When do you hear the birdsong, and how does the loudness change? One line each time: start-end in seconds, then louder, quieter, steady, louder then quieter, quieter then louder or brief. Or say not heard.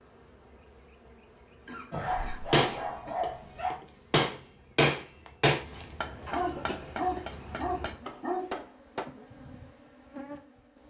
not heard.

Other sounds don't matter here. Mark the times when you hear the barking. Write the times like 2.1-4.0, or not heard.
1.9-3.8, 6.0-8.5.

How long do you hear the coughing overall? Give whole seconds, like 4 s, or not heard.
3 s.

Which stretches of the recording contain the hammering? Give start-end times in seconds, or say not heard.
2.1-9.1.